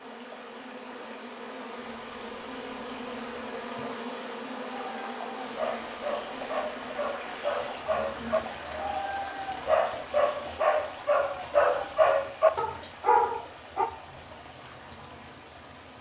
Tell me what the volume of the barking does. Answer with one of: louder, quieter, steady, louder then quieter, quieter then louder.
louder.